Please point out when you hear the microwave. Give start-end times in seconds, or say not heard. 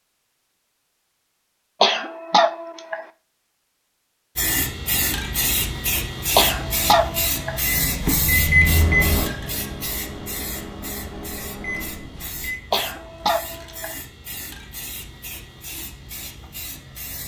7.6-12.7.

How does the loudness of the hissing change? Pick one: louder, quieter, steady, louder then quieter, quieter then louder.
quieter.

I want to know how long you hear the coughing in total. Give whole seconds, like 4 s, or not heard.
4 s.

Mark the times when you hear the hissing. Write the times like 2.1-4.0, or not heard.
4.3-17.2.